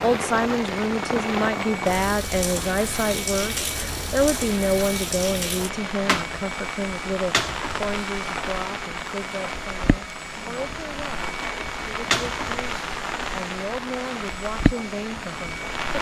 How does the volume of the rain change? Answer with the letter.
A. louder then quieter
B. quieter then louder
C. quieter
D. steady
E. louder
D.